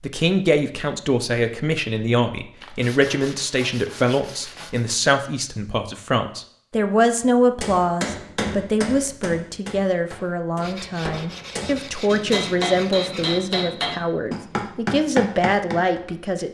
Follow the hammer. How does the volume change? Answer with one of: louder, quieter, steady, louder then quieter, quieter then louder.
quieter then louder.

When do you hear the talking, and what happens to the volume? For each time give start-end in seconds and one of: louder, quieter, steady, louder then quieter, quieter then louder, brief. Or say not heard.
0.0-16.4 steady.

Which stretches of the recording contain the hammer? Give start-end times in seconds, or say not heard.
7.6-16.0.